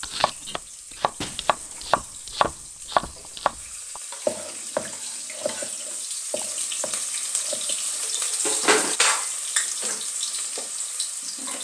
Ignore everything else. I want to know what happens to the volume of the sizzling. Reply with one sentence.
The volume of the sizzling goes up.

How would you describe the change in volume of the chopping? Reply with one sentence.
The volume of the chopping goes up, then down.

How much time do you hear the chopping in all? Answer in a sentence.
You can hear the chopping for 8 seconds altogether.